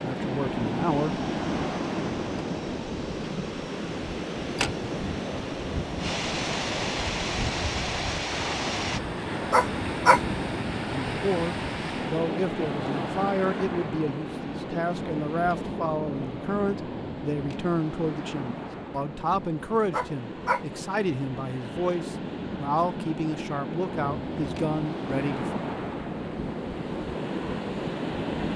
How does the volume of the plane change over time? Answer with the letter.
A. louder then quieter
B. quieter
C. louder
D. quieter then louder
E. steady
C.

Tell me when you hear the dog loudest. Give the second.
10 s.